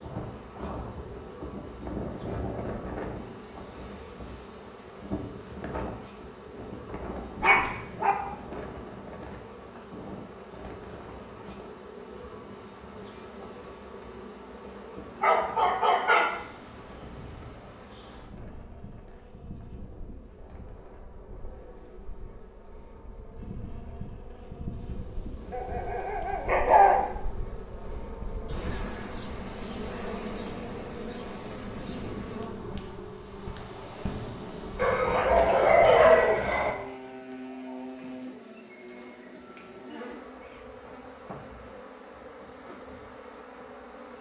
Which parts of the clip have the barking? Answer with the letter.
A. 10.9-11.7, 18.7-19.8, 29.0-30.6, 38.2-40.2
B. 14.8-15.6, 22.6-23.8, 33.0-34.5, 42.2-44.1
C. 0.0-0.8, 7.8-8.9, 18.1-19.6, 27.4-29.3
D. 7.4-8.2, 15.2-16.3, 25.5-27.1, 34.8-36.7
D.